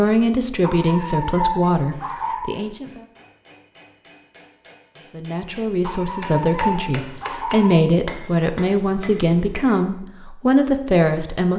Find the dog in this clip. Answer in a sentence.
The dog can be heard from 0.6 to 2.5 s and from 5.8 to 7.8 s.